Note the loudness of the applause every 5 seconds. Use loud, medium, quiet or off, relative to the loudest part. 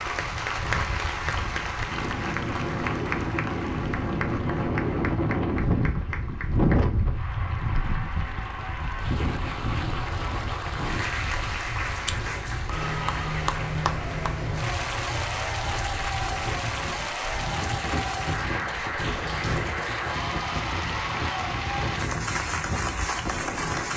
loud, medium, loud, loud, loud.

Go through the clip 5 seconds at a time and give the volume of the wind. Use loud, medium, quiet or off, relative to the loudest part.
loud, loud, medium, medium, medium.